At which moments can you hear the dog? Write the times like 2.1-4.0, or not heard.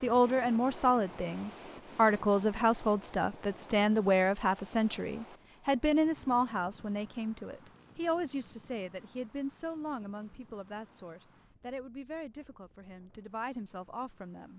not heard.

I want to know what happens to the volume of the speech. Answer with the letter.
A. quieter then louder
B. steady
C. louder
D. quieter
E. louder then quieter
D.